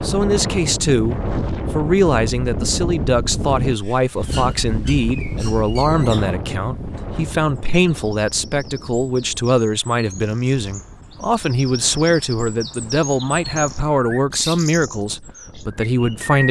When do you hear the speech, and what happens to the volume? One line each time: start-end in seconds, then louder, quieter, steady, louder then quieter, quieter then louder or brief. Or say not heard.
0.0-16.4 steady.